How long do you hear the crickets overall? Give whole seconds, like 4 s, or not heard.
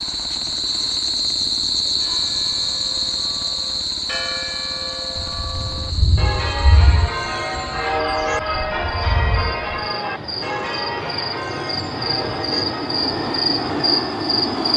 15 s.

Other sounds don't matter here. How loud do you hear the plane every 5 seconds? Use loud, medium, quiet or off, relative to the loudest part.
quiet, medium, loud.